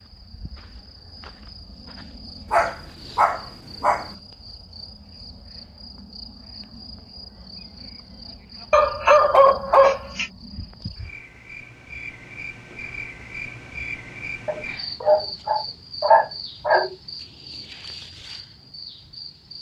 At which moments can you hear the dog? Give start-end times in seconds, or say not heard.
2.5-4.0, 8.7-10.3, 14.4-16.9.